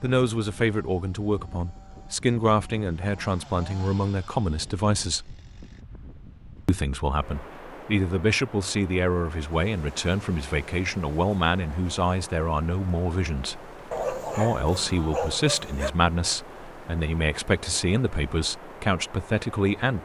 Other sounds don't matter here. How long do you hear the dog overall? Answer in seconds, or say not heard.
2 s.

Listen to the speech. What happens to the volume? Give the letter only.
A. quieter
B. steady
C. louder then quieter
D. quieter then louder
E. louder
B.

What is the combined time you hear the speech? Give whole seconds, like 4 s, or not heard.
19 s.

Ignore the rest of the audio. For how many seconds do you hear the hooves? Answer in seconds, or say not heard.
not heard.